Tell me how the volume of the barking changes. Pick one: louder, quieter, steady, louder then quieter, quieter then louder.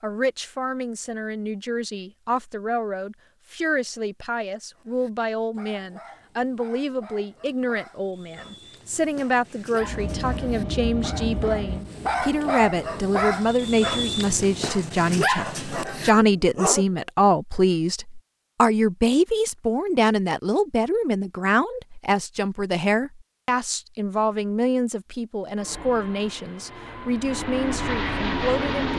louder.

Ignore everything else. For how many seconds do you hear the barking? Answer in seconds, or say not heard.
12 s.